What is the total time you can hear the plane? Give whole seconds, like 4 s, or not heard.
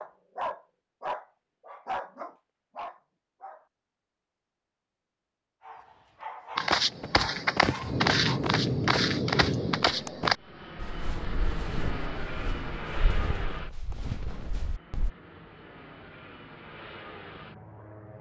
10 s.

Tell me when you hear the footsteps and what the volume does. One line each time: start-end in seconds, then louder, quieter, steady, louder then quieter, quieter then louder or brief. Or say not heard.
6.5-15.1 quieter.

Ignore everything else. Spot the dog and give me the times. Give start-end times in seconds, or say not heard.
0.0-3.6, 5.6-8.5.